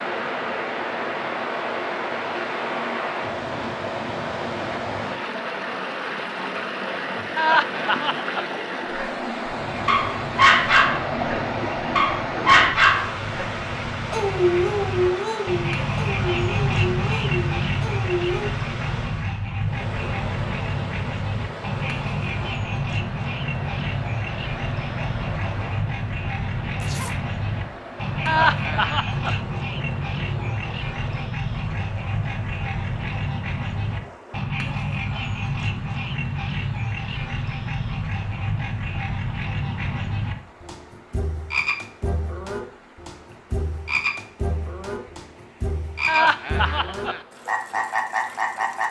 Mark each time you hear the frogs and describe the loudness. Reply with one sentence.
The frogs can be heard from 9.4 to 48.8 s, at a steady volume.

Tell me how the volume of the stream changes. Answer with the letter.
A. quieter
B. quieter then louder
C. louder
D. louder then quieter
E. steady
A.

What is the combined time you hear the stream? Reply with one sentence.
You can hear the stream for 49 seconds altogether.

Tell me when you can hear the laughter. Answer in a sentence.
The laughter can be heard from 7.3 to 8.5 s, from 28.2 to 29.4 s and from 46.0 to 47.2 s.